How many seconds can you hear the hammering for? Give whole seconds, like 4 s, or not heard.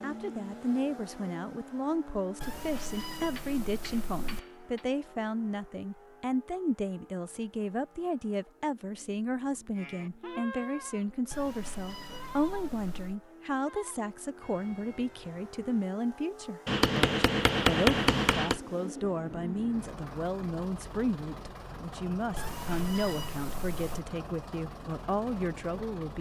4 s.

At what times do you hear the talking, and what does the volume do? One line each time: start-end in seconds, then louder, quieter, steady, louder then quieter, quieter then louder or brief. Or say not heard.
0.0-26.1 steady.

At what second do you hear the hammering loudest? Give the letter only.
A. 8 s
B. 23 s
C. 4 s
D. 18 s
D.